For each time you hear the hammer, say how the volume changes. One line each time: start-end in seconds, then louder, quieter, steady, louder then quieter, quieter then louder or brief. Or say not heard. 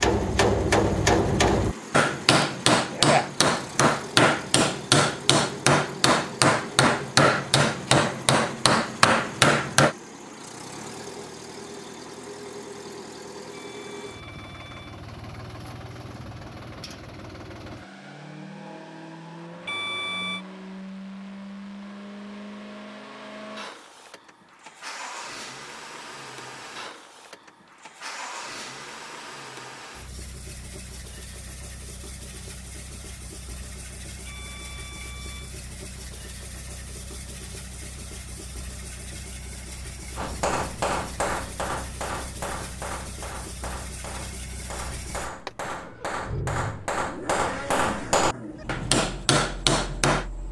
0.0-9.9 steady
40.1-50.3 quieter then louder.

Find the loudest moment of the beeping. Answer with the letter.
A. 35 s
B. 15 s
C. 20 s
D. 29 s
C.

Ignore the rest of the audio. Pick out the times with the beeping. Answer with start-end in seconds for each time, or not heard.
13.5-15.0, 19.6-20.4, 34.2-35.5.